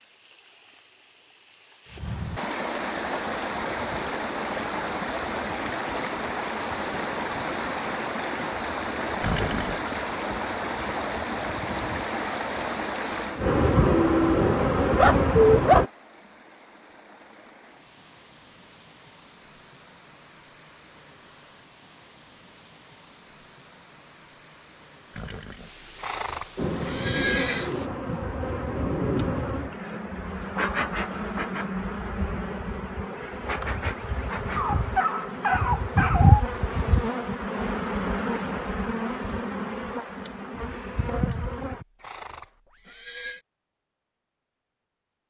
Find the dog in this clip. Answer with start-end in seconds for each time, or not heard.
13.9-15.8, 34.5-36.5.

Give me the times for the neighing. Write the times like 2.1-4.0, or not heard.
9.2-9.8, 25.1-27.7, 41.1-43.5.